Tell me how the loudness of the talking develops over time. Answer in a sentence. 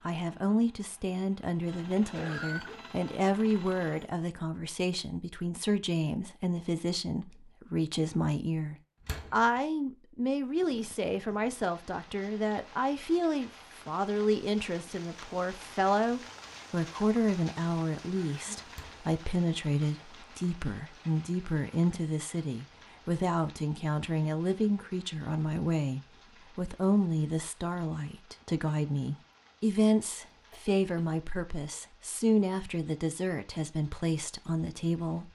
The loudness of the talking stays about the same.